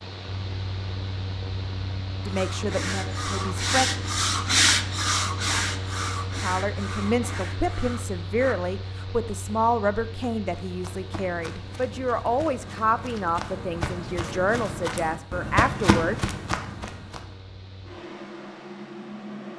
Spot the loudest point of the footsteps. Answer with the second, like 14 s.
16 s.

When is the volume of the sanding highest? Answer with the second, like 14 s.
5 s.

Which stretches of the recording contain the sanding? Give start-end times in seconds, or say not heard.
2.2-8.6.